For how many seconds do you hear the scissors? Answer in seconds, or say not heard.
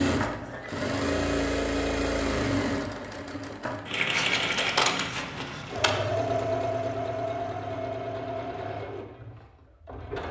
2 s.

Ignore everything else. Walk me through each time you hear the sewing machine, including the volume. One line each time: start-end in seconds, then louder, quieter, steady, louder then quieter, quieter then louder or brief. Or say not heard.
0.0-10.2 quieter.